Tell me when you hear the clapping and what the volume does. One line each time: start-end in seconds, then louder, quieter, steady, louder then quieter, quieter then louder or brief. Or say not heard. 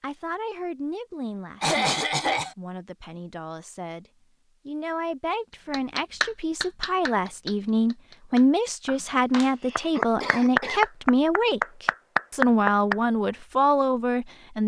5.7-12.9 quieter then louder.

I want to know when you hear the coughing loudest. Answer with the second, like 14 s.
2 s.